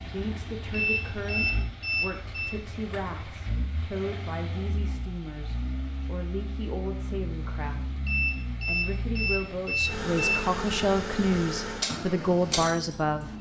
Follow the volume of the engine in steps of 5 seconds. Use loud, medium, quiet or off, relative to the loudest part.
medium, medium, loud.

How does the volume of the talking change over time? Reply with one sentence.
The loudness of the talking goes up.